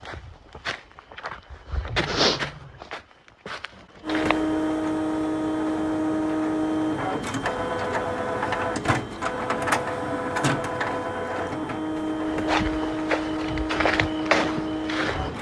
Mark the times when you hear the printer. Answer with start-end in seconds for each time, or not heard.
4.0-15.3.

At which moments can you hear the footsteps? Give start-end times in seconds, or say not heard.
0.0-4.5, 12.3-15.3.